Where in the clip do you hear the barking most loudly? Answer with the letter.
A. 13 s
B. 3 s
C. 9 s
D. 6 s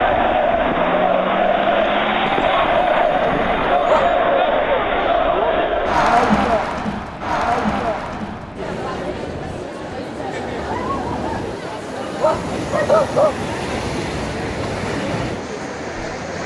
A.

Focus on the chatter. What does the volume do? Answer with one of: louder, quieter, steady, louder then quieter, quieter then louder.
quieter.